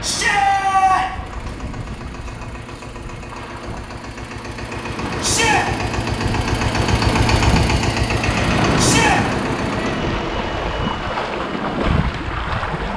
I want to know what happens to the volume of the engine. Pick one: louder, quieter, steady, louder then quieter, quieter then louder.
louder then quieter.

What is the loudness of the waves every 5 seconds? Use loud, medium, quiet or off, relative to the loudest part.
quiet, loud, loud.